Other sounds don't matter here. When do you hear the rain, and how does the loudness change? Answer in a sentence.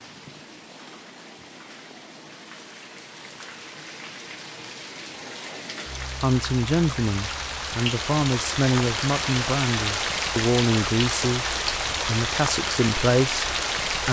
The rain can be heard from 0.0 to 14.0 s, getting louder.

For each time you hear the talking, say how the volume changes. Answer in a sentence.
The talking can be heard from 6.2 to 14.0 s, at a steady volume.